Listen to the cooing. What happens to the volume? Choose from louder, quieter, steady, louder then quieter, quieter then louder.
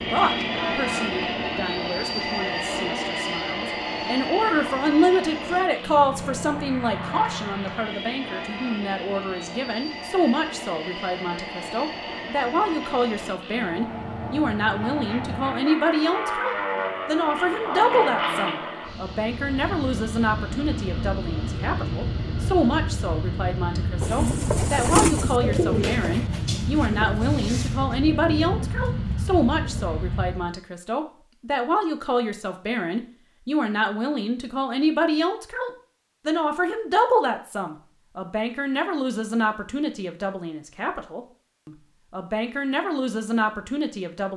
quieter.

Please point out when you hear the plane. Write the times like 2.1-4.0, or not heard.
0.0-30.5.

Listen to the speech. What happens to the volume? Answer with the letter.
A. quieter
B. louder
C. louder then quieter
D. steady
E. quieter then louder
D.